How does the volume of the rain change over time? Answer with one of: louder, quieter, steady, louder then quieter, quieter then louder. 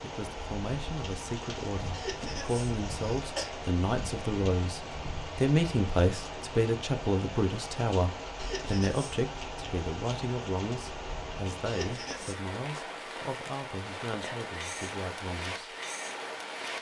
steady.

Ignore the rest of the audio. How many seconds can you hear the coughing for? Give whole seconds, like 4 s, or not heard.
3 s.